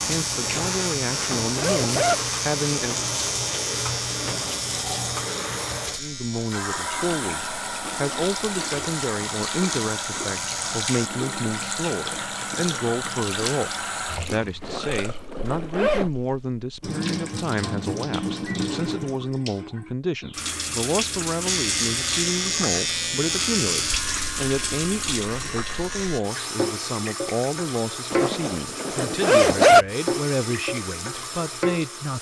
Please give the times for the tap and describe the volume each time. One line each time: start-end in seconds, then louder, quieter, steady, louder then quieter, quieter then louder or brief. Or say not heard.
0.0-32.1 steady.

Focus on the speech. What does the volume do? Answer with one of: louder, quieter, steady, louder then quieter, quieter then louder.
steady.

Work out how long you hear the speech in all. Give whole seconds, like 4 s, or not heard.
29 s.